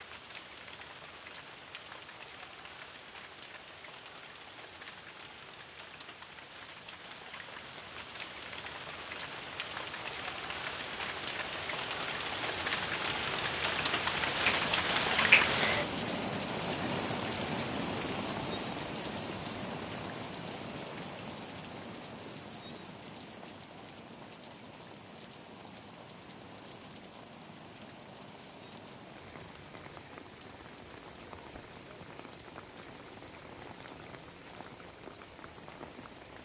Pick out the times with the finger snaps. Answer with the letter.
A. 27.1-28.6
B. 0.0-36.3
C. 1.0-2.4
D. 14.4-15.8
D.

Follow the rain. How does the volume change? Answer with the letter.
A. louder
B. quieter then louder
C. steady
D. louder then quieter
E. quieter
D.